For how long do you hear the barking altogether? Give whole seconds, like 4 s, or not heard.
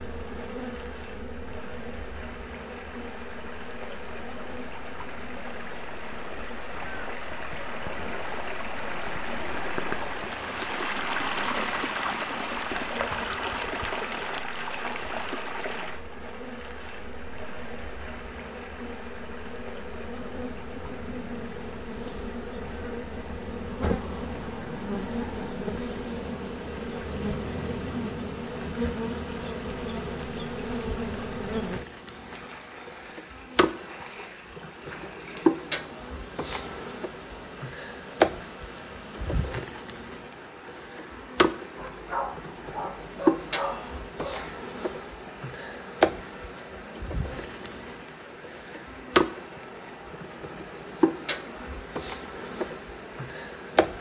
3 s.